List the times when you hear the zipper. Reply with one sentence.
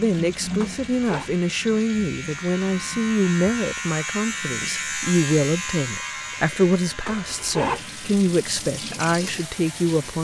The zipper can be heard from 0.6 to 1.3 s and from 7.0 to 7.8 s.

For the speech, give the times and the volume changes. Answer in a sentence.
The speech can be heard from 0.0 to 10.1 s, at a steady volume.